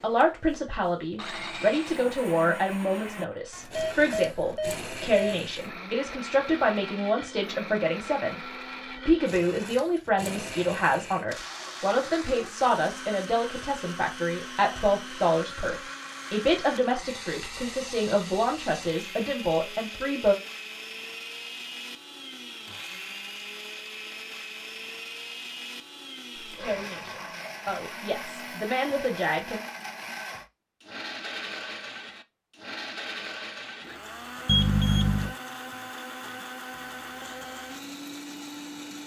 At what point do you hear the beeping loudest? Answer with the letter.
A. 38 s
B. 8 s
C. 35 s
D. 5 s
C.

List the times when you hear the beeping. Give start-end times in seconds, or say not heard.
3.5-5.3, 34.5-35.4.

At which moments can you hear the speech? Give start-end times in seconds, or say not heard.
0.0-20.4, 26.4-29.6.